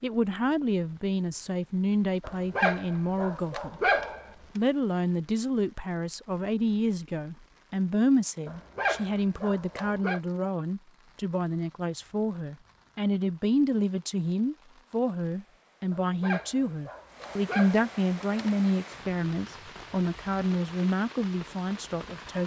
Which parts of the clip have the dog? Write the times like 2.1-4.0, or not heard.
2.2-4.3, 8.4-10.2, 15.9-18.6.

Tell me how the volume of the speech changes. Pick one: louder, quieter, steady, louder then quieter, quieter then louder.
steady.